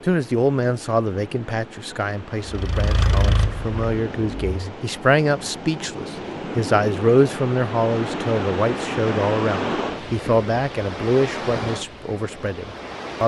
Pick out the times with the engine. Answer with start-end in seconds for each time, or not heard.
2.5-4.8.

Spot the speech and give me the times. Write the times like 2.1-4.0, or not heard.
0.0-13.2.